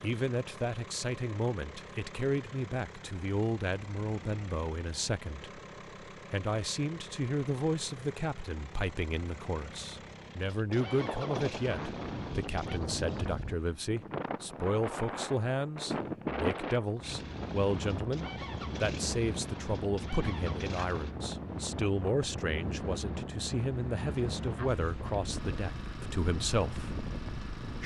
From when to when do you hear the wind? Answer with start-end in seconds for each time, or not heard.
10.7-27.8.